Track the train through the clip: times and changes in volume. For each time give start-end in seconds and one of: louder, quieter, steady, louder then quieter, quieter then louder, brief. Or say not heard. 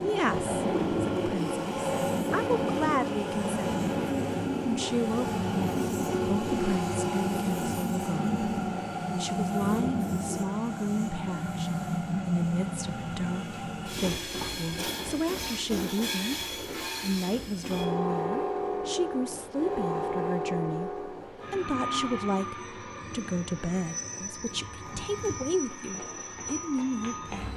0.0-27.5 quieter.